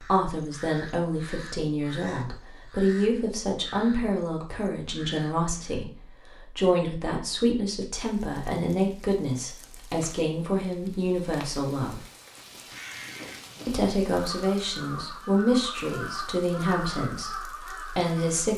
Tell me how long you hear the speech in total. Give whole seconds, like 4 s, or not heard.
17 s.